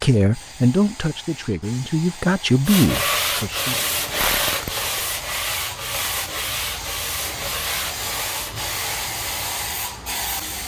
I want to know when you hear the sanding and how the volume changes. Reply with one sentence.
The sanding can be heard from 2.6 to 9.7 s, getting quieter.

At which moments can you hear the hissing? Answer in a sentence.
The hissing can be heard from 0.0 to 10.6 s.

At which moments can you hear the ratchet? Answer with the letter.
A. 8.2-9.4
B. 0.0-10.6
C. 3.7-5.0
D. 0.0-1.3
C.